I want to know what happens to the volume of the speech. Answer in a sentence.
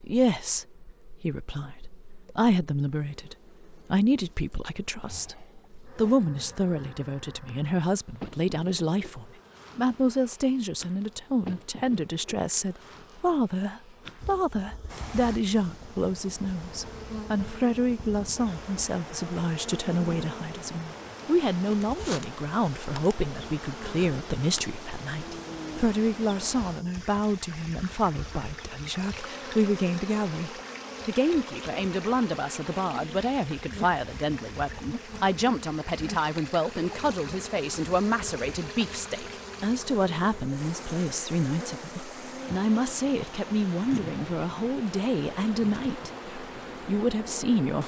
The volume of the speech stays about the same.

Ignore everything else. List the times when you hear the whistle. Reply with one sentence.
The whistle can't be heard in this clip.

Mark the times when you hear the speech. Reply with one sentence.
The speech can be heard from 0.0 to 5.3 s and from 6.0 to 47.8 s.